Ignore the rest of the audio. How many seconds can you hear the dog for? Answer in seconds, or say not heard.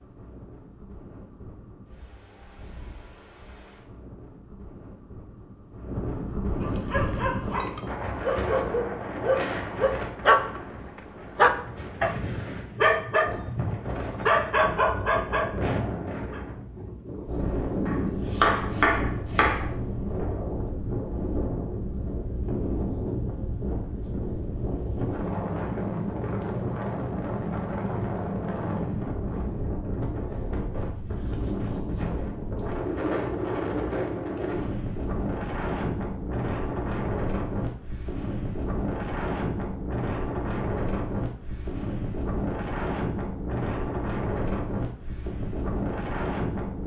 10 s.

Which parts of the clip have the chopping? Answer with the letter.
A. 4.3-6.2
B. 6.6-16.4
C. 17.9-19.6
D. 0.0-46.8
C.